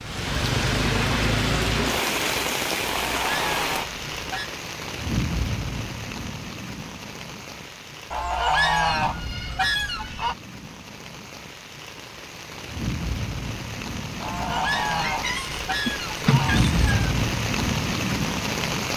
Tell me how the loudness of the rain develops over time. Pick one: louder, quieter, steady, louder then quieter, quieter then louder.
quieter then louder.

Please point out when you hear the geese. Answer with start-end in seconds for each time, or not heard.
3.0-4.5, 8.1-10.3, 14.2-16.6.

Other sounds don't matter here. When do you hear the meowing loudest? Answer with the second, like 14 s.
16 s.